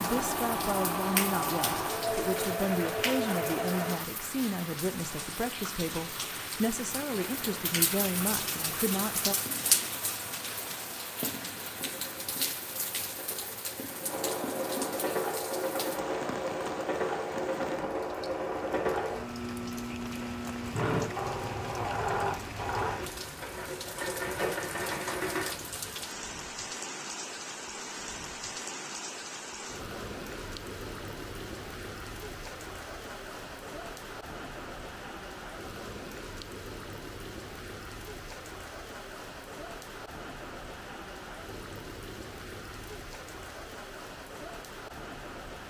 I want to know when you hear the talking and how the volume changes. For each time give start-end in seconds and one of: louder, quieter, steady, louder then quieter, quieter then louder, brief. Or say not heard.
0.0-9.3 steady.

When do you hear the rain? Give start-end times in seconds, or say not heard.
0.0-45.6.